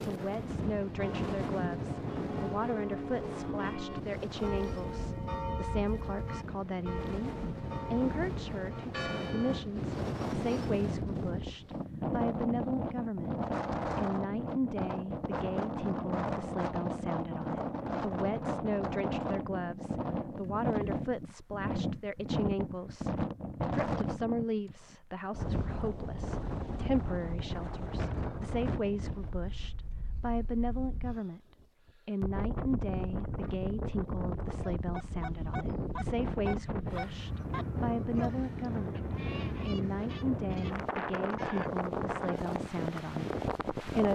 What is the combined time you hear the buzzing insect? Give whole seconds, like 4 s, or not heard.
not heard.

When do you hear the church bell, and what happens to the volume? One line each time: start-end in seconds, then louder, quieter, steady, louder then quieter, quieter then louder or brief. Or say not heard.
0.9-9.7 steady.